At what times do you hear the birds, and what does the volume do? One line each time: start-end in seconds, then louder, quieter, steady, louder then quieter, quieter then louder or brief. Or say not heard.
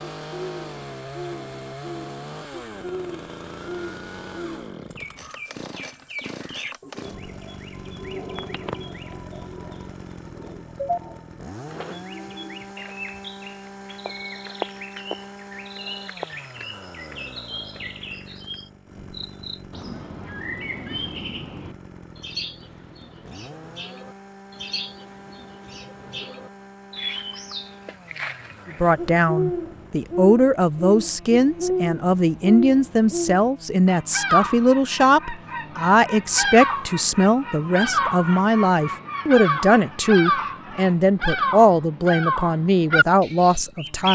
0.2-44.1 louder.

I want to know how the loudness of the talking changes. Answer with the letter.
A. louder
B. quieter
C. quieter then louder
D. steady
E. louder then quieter
D.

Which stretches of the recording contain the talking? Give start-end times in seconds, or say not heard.
28.8-44.1.